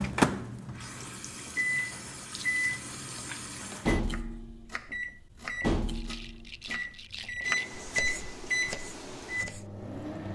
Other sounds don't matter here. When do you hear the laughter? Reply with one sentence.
You can't hear the laughter here.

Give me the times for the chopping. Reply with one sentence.
The chopping can be heard from 4.0 to 9.7 s.